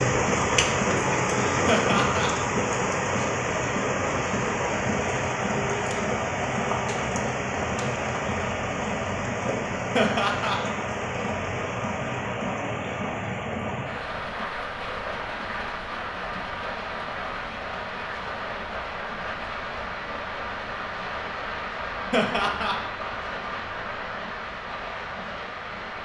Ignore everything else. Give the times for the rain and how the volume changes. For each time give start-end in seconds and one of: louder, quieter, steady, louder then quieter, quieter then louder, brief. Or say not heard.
0.0-26.0 quieter.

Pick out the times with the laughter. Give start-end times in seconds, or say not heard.
1.6-2.3, 9.9-10.6, 22.1-22.8.